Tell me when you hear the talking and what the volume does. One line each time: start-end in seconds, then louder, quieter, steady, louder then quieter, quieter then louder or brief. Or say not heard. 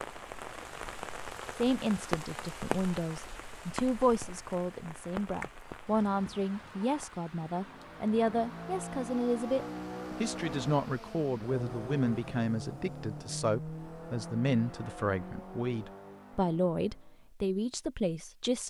1.6-18.6 steady.